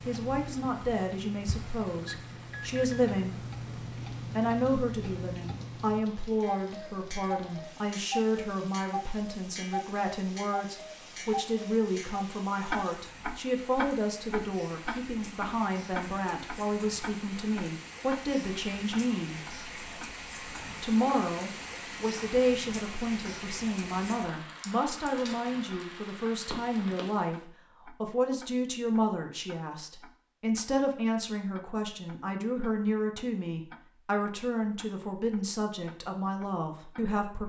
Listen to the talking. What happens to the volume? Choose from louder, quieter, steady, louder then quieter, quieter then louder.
steady.